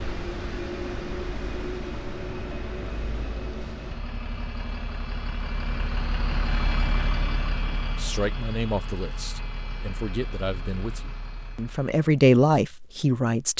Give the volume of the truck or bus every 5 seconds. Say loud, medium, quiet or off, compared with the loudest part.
loud, loud, medium.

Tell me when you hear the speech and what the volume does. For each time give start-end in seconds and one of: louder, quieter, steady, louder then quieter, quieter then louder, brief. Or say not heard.
8.0-13.5 louder.